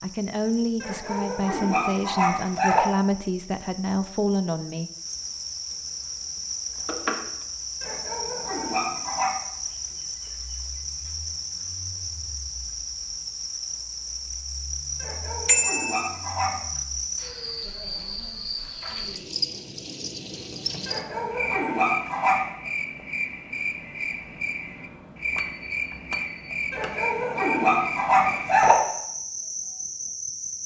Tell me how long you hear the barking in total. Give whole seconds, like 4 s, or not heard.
9 s.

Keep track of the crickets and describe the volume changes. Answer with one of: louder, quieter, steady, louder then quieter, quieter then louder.
louder.